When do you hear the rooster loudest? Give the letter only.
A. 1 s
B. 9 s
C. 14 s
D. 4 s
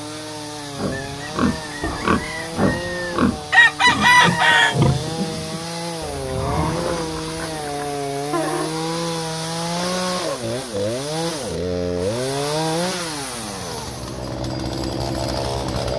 D.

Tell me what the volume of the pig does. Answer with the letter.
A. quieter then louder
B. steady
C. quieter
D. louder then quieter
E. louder
C.